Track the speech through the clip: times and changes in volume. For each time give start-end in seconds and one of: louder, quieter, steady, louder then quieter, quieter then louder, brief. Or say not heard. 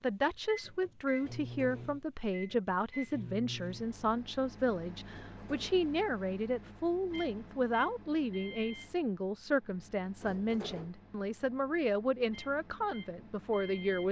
0.0-14.0 steady.